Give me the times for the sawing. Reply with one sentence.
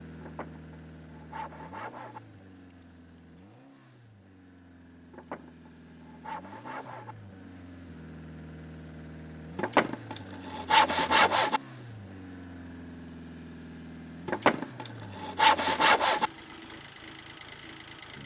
You can hear the sawing from 0.2 to 2.2 s, from 5.1 to 7.2 s, from 9.6 to 11.6 s and from 14.2 to 16.3 s.